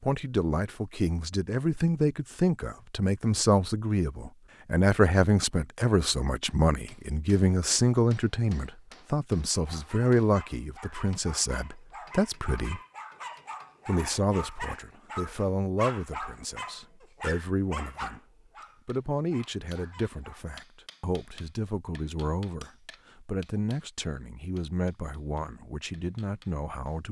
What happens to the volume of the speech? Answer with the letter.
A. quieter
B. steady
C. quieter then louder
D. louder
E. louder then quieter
A.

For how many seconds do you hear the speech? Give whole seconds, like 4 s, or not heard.
25 s.